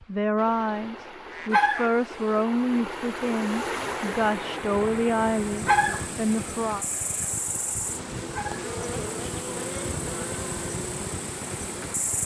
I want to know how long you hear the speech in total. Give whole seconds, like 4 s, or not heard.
7 s.